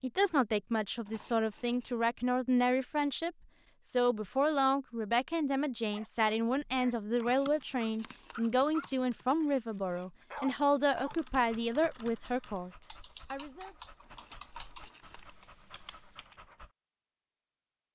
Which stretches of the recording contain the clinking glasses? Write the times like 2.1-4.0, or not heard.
not heard.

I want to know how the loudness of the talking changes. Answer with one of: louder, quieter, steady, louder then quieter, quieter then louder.
steady.